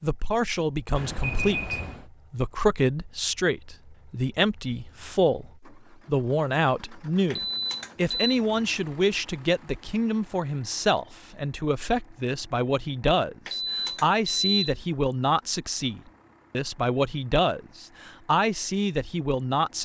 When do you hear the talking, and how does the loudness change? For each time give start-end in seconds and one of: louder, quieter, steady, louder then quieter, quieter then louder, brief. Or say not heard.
0.0-19.8 steady.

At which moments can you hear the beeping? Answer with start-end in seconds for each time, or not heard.
0.9-2.0, 7.3-8.3, 13.4-14.6.